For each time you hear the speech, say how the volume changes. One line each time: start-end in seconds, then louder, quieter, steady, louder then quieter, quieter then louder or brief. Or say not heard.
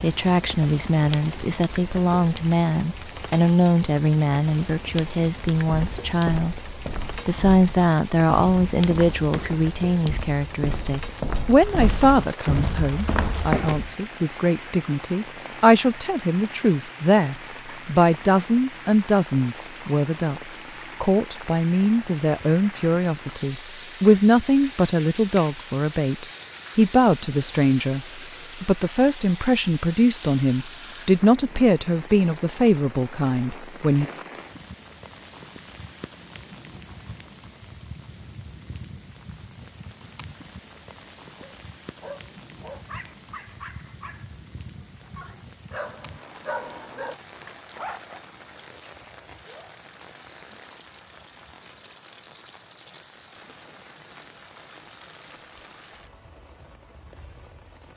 0.0-34.0 steady.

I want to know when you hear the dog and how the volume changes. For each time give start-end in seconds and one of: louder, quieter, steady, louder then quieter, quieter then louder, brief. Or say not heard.
41.4-47.1 quieter then louder
47.8-48.2 brief.